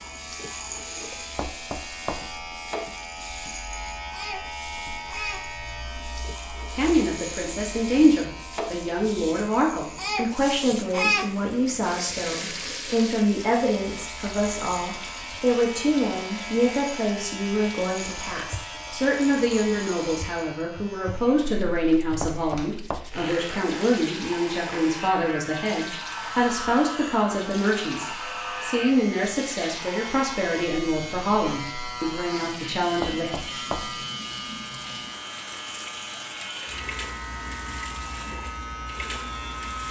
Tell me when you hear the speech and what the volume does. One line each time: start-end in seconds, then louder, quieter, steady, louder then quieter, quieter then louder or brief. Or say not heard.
6.7-33.4 steady.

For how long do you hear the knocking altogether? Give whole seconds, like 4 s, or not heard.
3 s.